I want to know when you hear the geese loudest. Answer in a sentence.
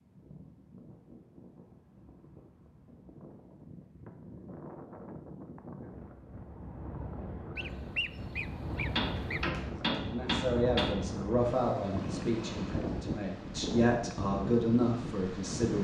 The volume of the geese peaks at 8 seconds.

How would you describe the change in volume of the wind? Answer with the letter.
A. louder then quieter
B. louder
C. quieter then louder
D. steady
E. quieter
B.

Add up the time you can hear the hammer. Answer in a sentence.
The hammer can be heard for 2 seconds in total.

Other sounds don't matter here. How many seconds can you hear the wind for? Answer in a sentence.
The wind can be heard for 16 seconds in total.